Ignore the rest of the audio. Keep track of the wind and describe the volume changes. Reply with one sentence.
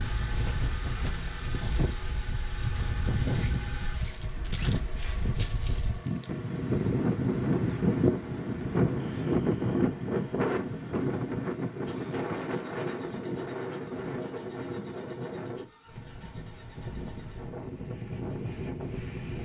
The loudness of the wind goes up, then down.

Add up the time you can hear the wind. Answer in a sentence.
You can hear the wind for 19 seconds altogether.